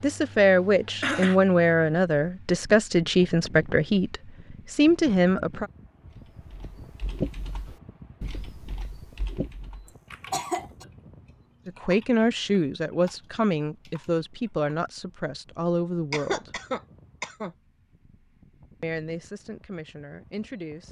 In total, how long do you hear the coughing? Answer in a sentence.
You can hear the coughing for 3 seconds altogether.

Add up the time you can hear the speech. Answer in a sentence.
You can hear the speech for 13 seconds altogether.